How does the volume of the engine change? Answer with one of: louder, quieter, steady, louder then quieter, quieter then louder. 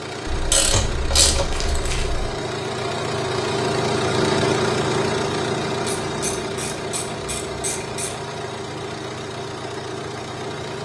louder then quieter.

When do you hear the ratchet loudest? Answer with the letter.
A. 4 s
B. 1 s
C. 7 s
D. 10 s
B.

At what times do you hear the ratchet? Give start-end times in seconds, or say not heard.
0.2-2.2, 6.0-8.2.